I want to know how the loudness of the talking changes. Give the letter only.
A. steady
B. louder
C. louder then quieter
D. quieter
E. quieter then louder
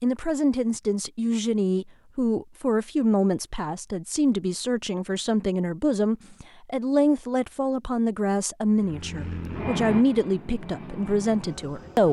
A.